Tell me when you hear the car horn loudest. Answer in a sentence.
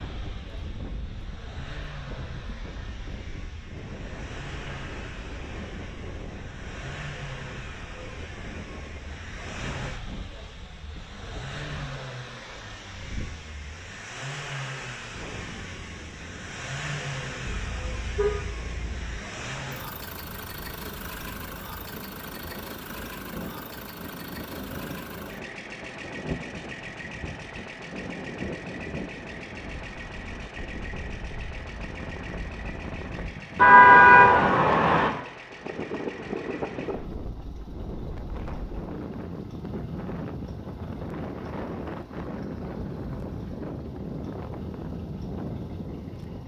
The loudest moment of the car horn is at 34 seconds.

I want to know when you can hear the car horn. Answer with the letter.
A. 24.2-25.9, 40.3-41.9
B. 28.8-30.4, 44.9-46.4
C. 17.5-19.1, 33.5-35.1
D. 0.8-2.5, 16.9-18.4
C.